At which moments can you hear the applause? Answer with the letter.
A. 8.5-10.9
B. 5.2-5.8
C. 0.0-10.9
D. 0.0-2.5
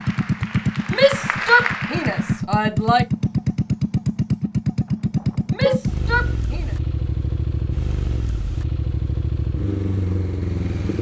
D.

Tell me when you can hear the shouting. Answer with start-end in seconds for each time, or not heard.
0.9-3.0, 5.5-6.8.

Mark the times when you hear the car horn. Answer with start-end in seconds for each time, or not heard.
5.2-5.8.